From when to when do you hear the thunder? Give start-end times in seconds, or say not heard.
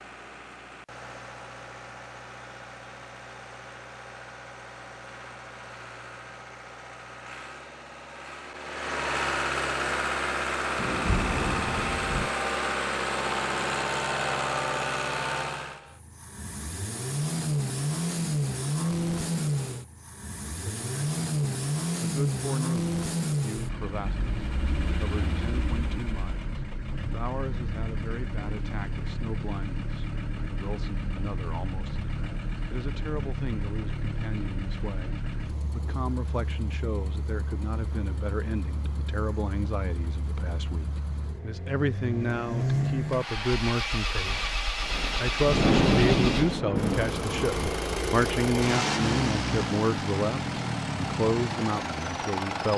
10.8-12.3, 44.8-47.9.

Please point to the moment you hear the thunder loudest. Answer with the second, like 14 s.
46 s.